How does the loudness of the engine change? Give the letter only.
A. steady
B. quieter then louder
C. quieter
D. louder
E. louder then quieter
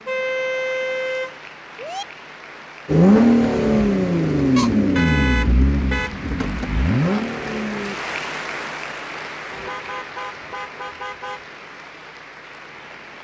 B.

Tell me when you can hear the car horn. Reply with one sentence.
The car horn can be heard from 0.1 to 2.0 s, from 4.5 to 6.2 s and from 9.5 to 11.4 s.